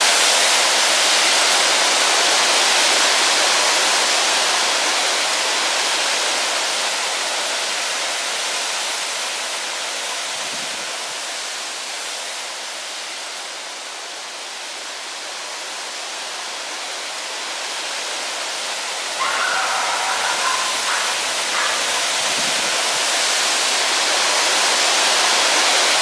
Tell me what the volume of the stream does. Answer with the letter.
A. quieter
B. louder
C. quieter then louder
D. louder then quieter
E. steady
C.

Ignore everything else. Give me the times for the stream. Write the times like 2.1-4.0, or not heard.
0.0-25.9.